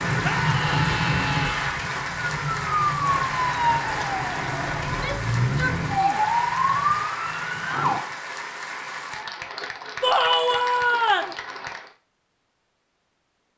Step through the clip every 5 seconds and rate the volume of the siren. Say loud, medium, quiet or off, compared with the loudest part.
loud, loud, off.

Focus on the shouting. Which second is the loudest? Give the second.
10 s.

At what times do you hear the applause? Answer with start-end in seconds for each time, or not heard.
0.0-11.9.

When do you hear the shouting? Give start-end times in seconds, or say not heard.
0.2-1.8, 4.8-6.3, 10.0-11.3.